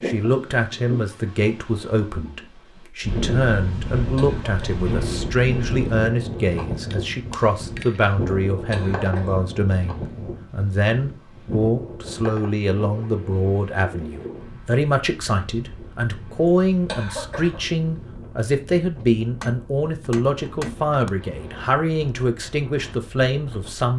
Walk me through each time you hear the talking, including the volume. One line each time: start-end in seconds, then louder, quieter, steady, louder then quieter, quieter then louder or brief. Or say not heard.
0.0-23.9 steady.